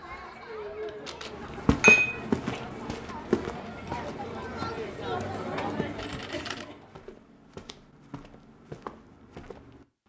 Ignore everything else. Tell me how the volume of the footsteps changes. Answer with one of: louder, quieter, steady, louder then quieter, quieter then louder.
quieter.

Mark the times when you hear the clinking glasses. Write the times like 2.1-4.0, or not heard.
1.8-2.6.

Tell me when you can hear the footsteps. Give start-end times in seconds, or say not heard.
1.2-9.8.